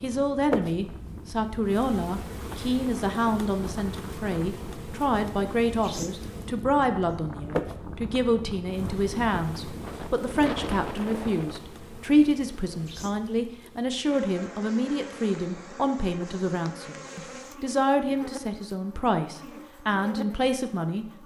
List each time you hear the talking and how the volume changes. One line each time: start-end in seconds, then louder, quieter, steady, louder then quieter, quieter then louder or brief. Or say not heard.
0.0-21.1 steady.